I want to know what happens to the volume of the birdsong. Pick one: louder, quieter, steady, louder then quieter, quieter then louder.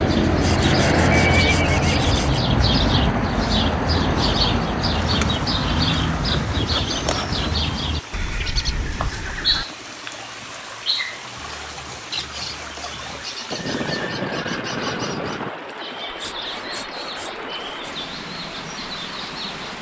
quieter.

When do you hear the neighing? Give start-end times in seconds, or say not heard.
1.1-1.9, 8.1-9.7, 13.5-15.5.